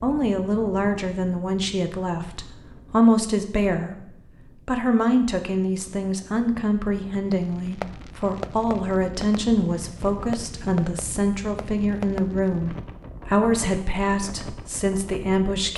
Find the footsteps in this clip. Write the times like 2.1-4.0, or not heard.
not heard.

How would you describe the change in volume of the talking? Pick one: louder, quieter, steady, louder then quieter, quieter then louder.
steady.